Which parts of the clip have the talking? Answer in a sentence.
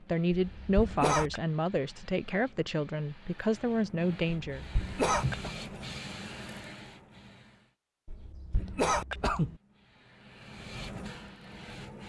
The talking can be heard from 0.0 to 4.7 s.